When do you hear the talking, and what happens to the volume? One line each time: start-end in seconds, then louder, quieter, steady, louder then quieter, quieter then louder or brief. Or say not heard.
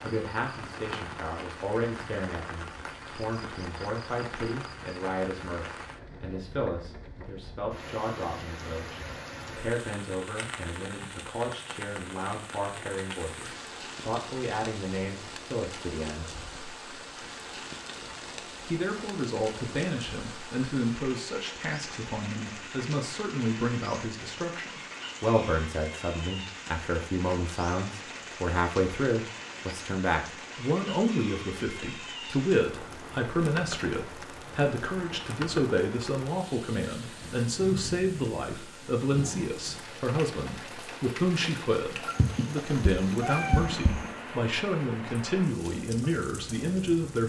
0.0-16.3 steady
18.6-47.2 steady.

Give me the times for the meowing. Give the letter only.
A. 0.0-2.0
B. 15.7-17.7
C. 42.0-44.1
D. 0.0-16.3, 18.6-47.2
C.